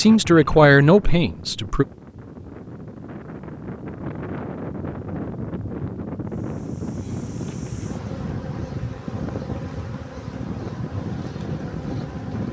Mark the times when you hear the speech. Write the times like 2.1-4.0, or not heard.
0.0-1.9.